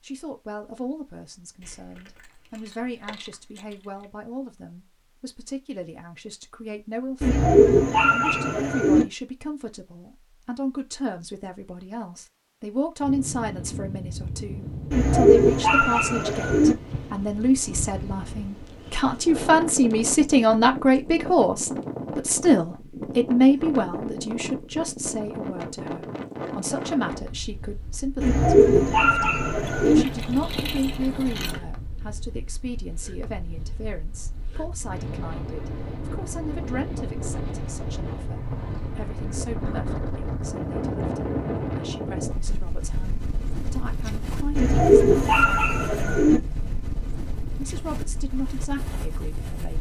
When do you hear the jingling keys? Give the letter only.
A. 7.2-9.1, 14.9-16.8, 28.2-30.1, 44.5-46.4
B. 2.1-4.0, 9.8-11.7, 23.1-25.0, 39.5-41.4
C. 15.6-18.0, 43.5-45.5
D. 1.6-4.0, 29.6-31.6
D.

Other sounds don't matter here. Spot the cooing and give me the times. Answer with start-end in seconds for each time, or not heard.
7.2-9.1, 14.9-16.8, 28.2-30.1, 44.5-46.4.